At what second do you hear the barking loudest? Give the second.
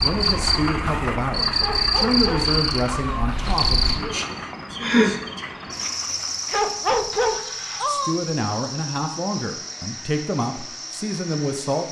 7 s.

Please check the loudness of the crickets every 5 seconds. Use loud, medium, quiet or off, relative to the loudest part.
loud, medium, quiet.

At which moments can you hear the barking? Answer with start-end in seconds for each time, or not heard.
1.6-3.2, 6.5-8.2.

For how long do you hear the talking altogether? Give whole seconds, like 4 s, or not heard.
8 s.